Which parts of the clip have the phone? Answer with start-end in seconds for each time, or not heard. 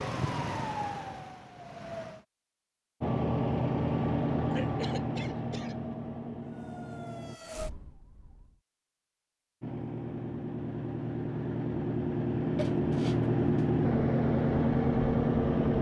not heard.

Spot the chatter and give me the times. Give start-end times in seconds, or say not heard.
not heard.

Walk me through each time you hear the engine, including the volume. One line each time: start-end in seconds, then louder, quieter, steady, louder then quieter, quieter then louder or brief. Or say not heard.
3.0-7.4 quieter
9.6-15.7 louder.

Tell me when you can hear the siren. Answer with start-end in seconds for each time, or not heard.
0.0-2.2, 6.4-8.6.